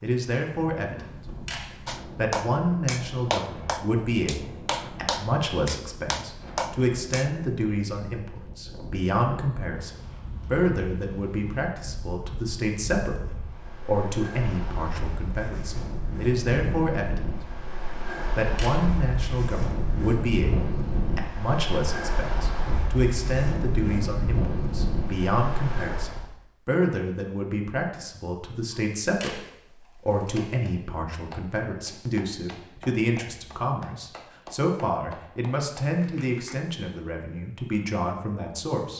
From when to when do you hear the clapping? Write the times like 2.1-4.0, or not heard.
1.9-7.3, 31.1-36.5.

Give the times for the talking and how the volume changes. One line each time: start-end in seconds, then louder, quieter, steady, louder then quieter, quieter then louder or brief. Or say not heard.
0.0-1.0 brief
2.1-17.2 steady
18.4-38.9 steady.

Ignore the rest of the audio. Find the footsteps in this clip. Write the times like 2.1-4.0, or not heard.
not heard.